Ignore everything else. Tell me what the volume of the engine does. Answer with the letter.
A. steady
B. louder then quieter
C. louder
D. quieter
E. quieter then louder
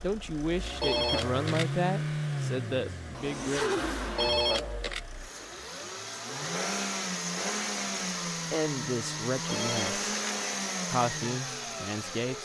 A.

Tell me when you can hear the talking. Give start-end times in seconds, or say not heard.
0.0-3.9, 8.5-10.0, 10.8-12.4.